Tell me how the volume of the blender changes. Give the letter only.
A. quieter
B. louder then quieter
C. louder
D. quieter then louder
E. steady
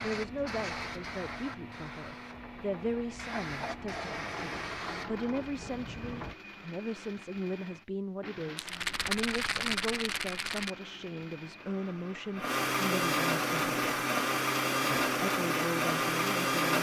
C.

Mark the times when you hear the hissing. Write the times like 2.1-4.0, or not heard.
0.0-6.3.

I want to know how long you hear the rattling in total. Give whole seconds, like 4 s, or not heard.
2 s.